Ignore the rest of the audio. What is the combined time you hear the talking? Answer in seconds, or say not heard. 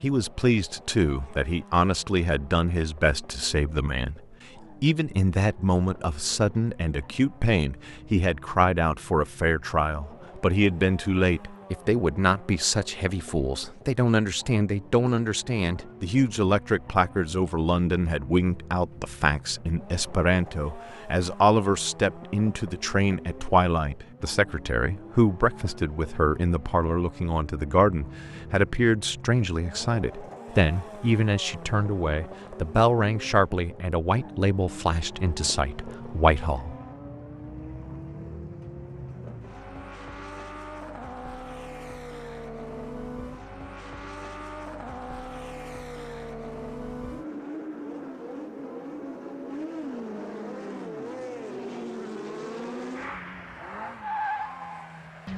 36 s.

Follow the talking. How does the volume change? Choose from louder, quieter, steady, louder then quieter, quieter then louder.
steady.